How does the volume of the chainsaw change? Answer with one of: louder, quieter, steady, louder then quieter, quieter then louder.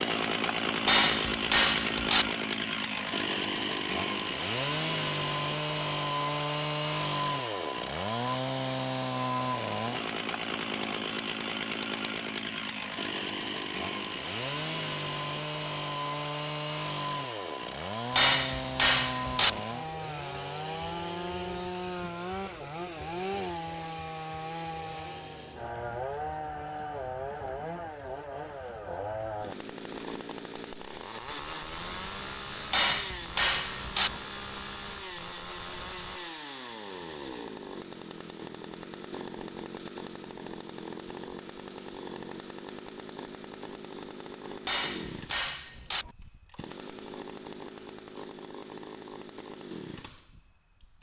quieter.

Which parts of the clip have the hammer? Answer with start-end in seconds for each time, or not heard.
0.8-2.4, 18.1-19.6, 32.7-34.2, 44.6-46.1.